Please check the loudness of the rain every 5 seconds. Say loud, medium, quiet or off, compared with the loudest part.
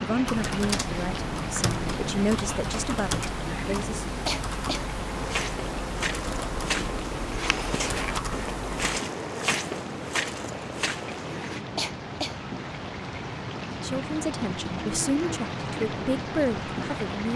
loud, medium, loud, loud.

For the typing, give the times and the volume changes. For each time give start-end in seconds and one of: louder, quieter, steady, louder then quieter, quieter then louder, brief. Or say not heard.
0.2-8.9 steady.